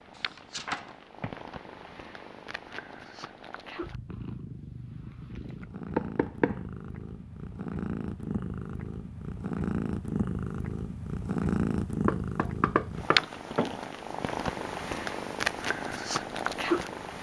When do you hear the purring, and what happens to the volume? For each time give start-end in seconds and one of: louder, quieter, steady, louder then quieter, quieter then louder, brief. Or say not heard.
0.0-17.1 louder.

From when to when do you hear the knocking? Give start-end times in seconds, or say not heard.
0.1-1.4, 6.0-6.6, 12.1-13.8.